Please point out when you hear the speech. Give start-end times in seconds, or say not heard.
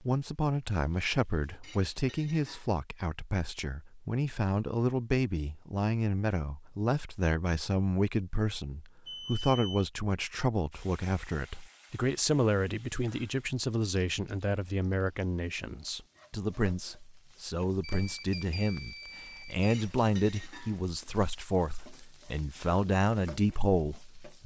0.0-24.4.